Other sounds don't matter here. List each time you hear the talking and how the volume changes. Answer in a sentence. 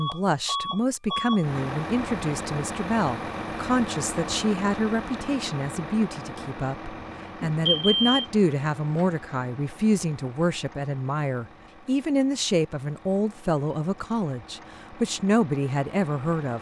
You can hear the talking from 0.0 to 16.5 s, at a steady volume.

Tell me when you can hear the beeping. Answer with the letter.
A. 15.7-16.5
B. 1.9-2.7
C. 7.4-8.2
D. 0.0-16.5
C.